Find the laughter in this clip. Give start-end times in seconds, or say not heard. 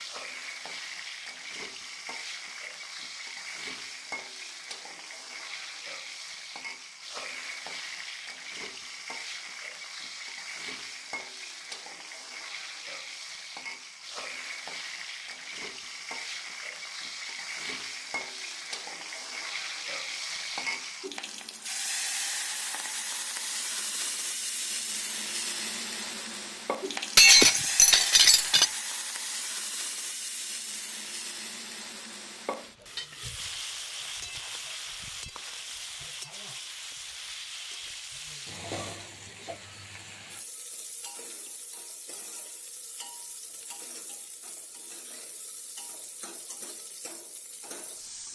not heard.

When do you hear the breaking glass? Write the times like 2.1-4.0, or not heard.
27.1-28.7.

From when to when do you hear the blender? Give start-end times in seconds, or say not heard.
not heard.